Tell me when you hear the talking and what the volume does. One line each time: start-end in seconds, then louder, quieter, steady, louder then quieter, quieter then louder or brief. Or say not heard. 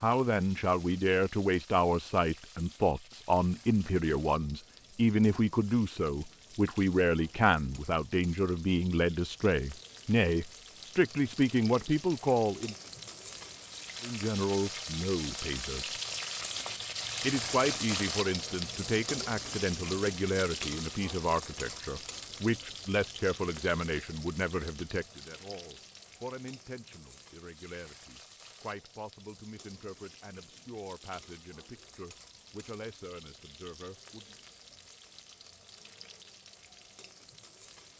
0.0-12.8 steady
14.0-15.9 brief
17.2-34.4 quieter.